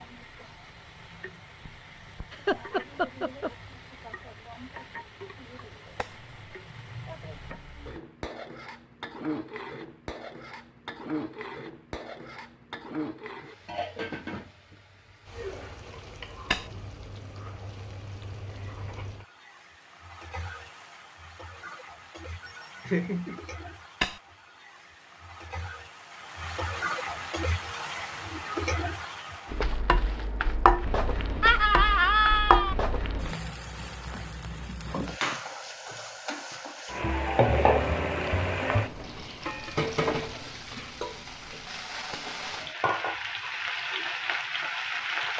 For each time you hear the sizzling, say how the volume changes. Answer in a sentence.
The sizzling can be heard from 0.0 to 45.3 s, getting louder.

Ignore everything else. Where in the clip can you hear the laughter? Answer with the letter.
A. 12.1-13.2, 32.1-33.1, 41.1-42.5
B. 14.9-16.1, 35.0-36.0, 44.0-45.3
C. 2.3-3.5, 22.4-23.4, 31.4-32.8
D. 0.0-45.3
C.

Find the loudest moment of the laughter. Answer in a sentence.
The volume of the laughter peaks at 32 seconds.